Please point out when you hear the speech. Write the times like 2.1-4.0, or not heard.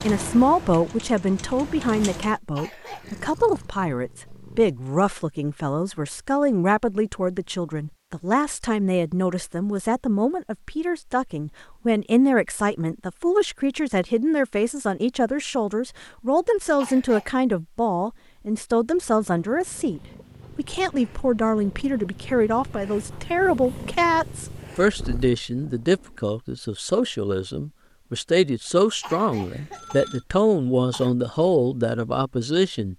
0.0-32.9.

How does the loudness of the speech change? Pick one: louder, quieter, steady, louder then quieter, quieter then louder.
steady.